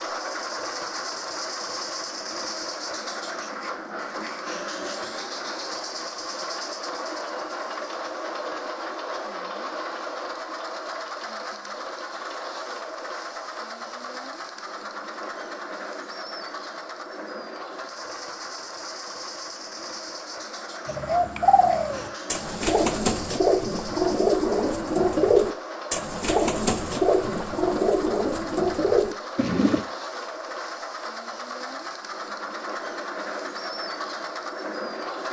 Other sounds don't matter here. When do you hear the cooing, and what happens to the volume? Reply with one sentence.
You can hear the cooing from 20.9 to 29.9 s, at a steady volume.